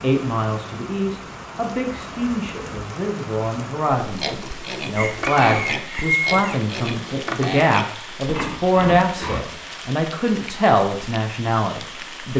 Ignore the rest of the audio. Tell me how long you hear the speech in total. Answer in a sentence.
The speech can be heard for 12 seconds in total.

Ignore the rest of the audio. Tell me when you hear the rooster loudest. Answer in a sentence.
The loudest moment of the rooster is at 6 seconds.